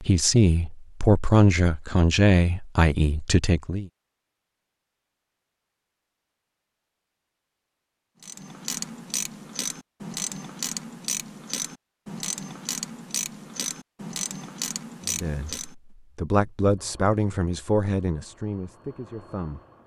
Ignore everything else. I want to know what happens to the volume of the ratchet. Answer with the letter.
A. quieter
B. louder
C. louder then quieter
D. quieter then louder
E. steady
E.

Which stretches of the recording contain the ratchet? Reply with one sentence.
You can hear the ratchet from 8.2 to 15.8 s.